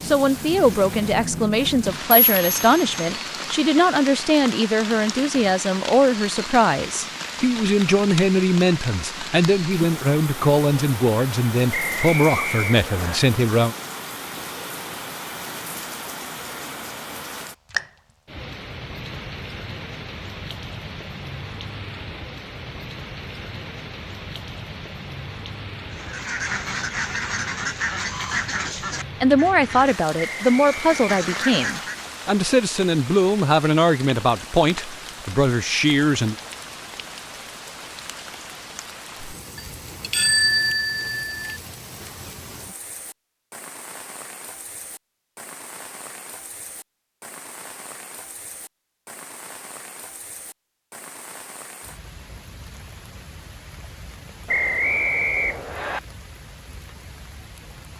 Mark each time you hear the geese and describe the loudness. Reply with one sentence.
You can hear the geese from 25.9 to 32.1 s, getting quieter then louder.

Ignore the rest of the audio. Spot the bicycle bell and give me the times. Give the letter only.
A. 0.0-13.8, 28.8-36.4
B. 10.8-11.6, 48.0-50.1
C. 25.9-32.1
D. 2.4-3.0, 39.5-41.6
D.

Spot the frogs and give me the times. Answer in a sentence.
You can't hear the frogs here.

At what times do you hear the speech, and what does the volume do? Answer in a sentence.
You can hear the speech from 0.0 to 13.8 s, at a steady volume; and from 28.8 to 36.4 s, at a steady volume.